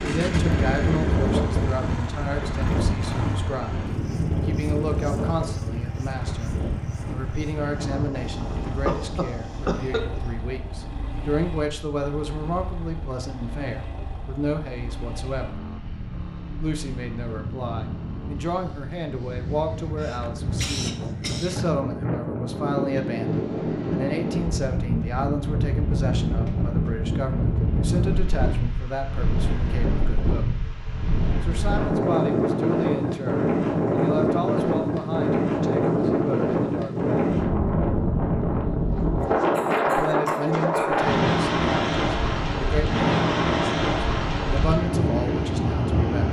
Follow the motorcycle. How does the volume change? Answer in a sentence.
The loudness of the motorcycle goes down.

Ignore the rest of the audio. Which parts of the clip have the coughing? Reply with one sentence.
The coughing can be heard from 8.8 to 10.2 s, from 19.9 to 21.6 s and from 39.1 to 41.0 s.